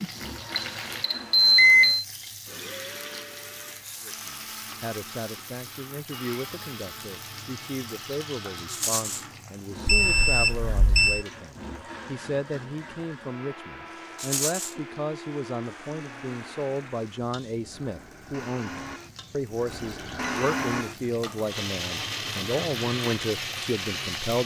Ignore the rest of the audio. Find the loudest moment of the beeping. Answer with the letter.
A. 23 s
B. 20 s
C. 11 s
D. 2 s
D.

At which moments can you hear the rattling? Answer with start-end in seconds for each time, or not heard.
8.7-9.2, 14.2-14.8.